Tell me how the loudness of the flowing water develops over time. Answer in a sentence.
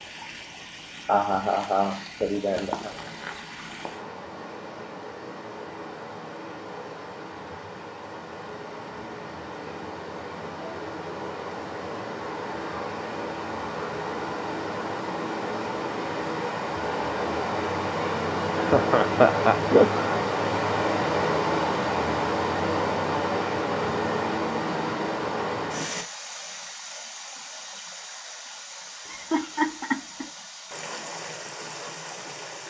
The loudness of the flowing water goes up, then down.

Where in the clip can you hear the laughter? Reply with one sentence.
The laughter can be heard from 1.1 to 2.9 s, from 18.6 to 20.1 s and from 29.1 to 30.2 s.